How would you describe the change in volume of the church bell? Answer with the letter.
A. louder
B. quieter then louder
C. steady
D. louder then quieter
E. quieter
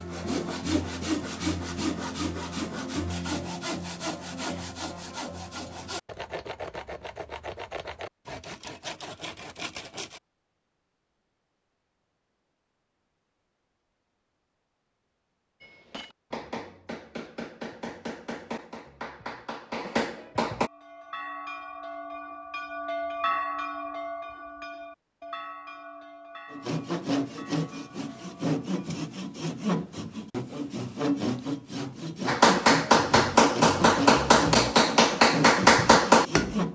D.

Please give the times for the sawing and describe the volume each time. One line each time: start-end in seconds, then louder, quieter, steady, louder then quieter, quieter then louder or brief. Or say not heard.
0.0-10.2 quieter
26.5-36.7 steady.